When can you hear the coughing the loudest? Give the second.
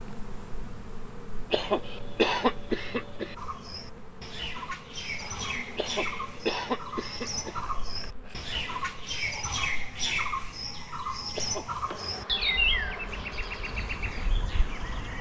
2 s.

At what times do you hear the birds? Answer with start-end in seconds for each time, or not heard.
3.4-15.1.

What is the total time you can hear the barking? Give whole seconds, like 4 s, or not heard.
not heard.